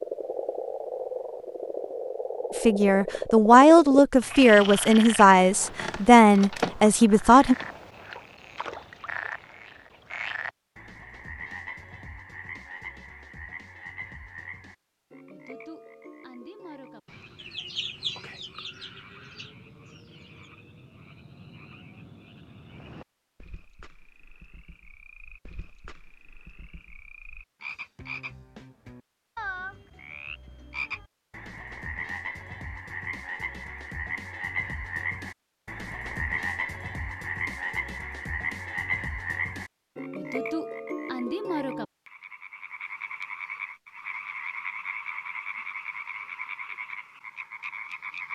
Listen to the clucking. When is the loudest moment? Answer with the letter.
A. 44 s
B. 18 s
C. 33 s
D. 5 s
B.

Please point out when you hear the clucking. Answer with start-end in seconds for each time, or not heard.
17.4-20.5.